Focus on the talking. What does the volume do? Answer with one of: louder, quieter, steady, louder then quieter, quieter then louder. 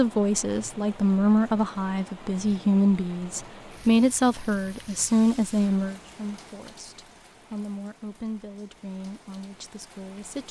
quieter.